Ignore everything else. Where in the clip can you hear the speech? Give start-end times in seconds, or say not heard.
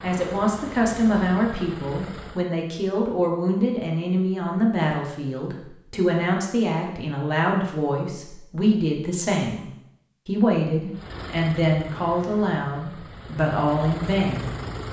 0.0-9.7, 10.2-14.5.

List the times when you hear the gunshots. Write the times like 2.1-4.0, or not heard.
not heard.